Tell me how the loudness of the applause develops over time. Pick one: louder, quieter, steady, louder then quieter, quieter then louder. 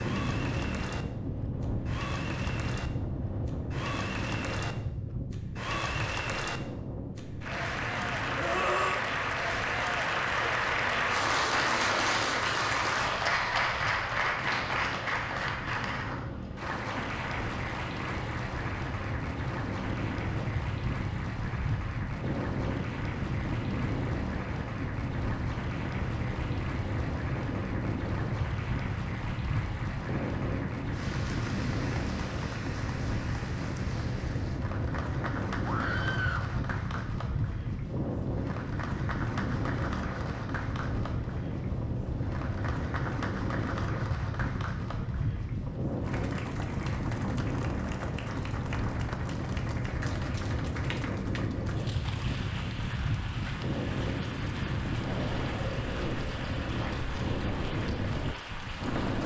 quieter.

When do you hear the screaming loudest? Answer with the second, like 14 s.
9 s.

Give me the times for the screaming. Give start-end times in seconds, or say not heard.
8.3-9.1, 35.6-36.5.